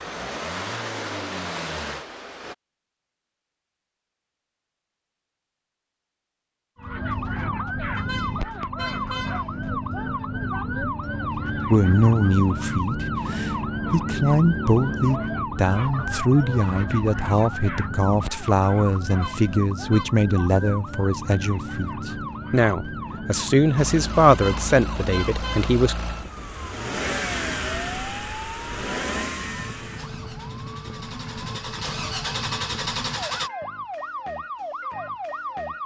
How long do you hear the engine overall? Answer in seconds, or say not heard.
12 s.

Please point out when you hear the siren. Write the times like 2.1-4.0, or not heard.
6.8-35.8.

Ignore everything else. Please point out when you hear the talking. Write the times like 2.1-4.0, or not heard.
11.7-26.0.